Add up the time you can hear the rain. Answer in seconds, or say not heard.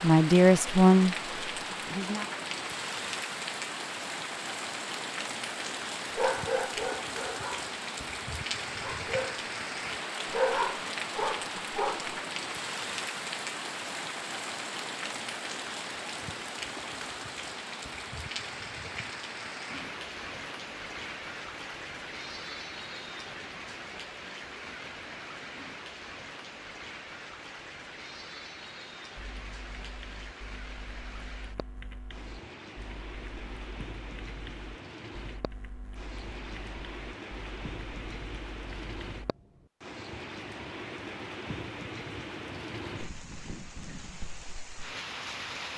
46 s.